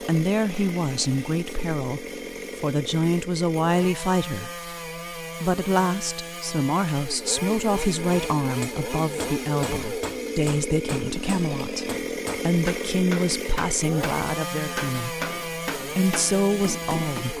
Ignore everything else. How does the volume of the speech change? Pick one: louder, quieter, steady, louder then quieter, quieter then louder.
steady.